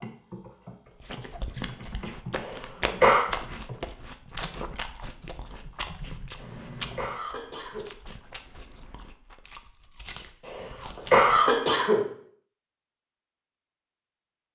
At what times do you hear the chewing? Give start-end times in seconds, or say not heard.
1.0-11.6.